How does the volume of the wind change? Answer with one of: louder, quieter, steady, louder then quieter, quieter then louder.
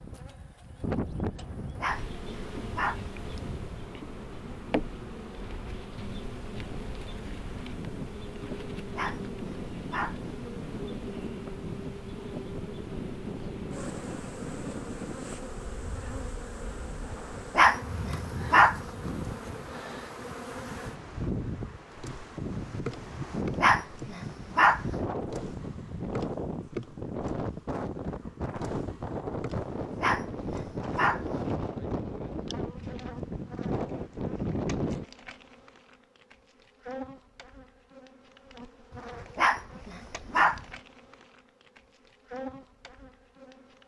louder.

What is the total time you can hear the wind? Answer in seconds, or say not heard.
35 s.